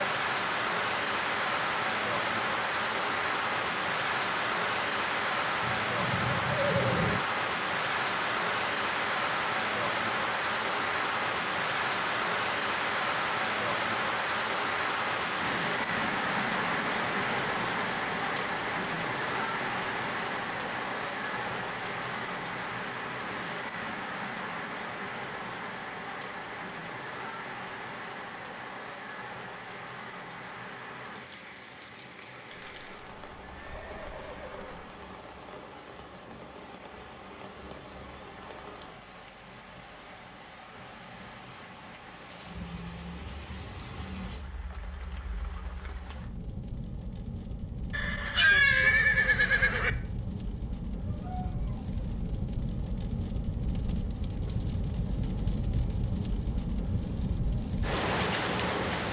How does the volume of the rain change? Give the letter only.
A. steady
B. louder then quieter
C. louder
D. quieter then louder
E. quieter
D.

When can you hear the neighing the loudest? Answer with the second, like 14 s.
49 s.